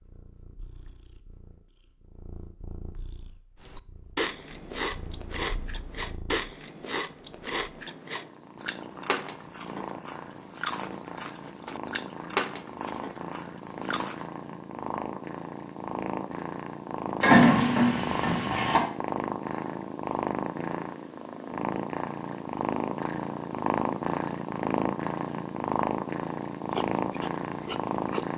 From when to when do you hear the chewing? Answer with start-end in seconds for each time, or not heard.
3.5-14.2, 26.7-28.3.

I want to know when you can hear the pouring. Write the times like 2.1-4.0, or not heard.
17.2-18.8.